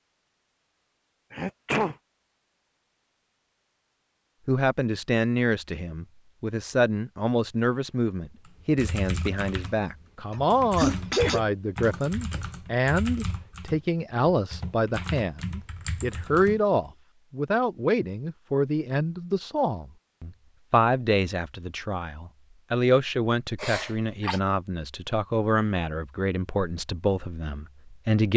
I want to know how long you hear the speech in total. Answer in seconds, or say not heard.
24 s.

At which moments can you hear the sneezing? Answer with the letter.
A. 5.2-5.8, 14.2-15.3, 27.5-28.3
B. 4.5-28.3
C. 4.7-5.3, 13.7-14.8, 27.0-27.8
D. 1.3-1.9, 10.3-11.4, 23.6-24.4
D.